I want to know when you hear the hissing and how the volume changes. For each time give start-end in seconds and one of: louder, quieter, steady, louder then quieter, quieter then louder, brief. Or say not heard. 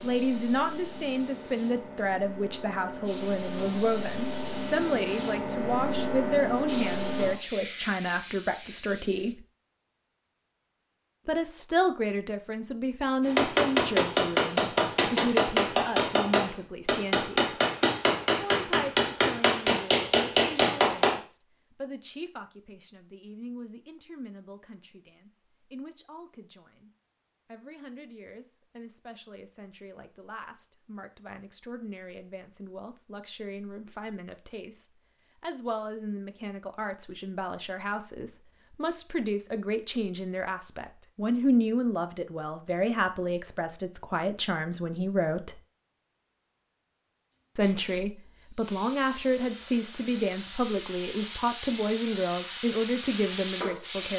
0.0-9.3 louder then quieter
47.5-54.1 louder.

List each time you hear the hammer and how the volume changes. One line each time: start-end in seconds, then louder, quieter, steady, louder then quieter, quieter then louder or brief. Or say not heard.
13.2-21.2 steady.